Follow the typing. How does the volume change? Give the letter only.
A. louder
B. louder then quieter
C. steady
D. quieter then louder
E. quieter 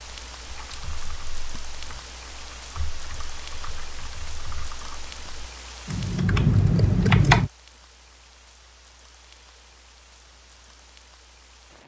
A.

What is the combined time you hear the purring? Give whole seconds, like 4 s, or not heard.
not heard.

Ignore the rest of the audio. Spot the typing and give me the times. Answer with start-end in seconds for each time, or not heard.
0.1-7.5.